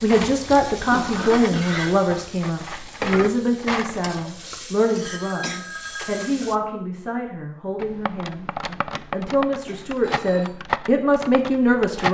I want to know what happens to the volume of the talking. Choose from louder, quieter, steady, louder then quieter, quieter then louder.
quieter then louder.